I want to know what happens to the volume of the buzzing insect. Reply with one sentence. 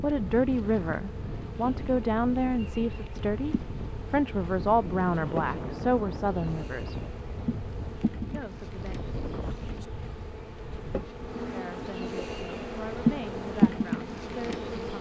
The volume of the buzzing insect goes up.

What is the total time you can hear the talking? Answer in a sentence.
You can hear the talking for 11 seconds altogether.